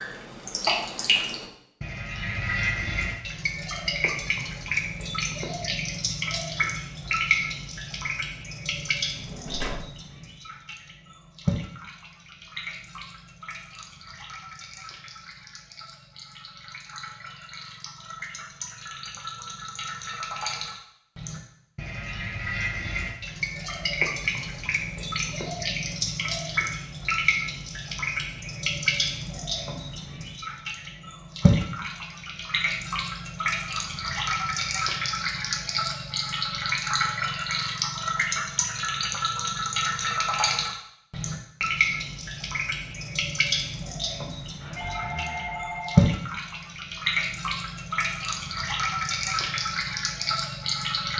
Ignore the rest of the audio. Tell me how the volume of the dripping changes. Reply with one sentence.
The loudness of the dripping goes down, then up.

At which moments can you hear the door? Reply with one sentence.
The door can be heard from 8.9 to 9.9 s.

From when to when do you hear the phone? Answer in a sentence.
The phone can be heard from 44.6 to 46.1 s.